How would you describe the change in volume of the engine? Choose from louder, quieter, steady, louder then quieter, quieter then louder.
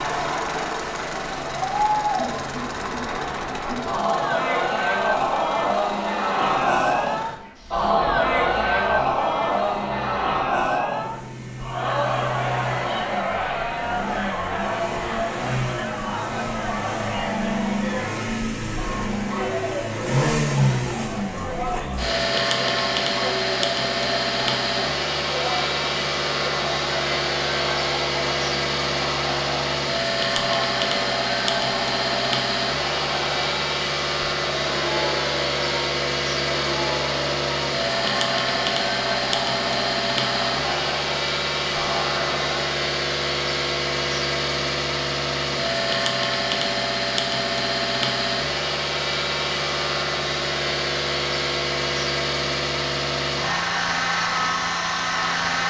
louder.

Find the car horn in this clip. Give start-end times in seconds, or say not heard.
not heard.